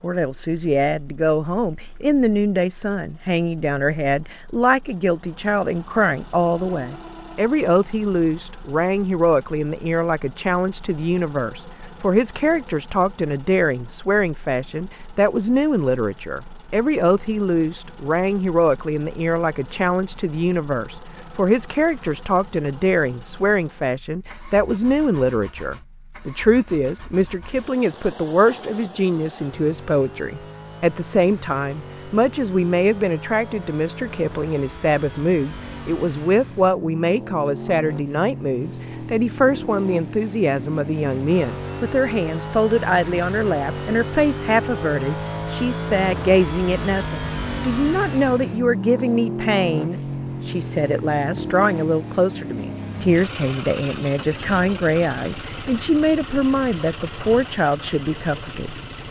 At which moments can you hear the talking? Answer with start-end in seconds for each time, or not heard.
0.0-58.8.